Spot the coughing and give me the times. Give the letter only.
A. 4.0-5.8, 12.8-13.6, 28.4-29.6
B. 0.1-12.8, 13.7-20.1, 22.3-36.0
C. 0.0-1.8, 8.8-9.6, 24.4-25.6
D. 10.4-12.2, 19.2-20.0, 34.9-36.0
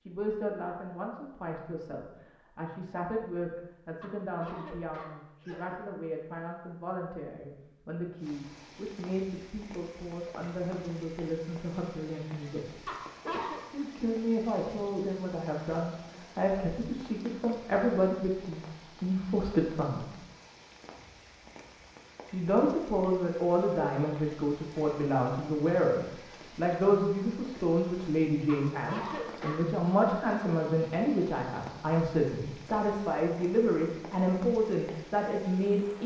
A.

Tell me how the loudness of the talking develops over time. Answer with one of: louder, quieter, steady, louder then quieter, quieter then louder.
louder.